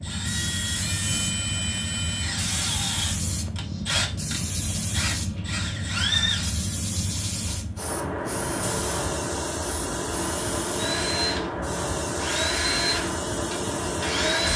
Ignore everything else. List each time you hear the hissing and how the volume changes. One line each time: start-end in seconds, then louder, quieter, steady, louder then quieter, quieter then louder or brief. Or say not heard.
0.0-14.5 steady.